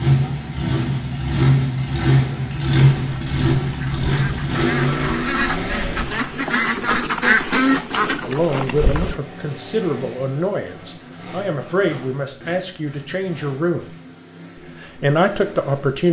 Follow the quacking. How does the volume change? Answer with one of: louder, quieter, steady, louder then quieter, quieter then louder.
louder then quieter.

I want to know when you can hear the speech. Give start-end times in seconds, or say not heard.
8.2-13.8, 14.8-16.0.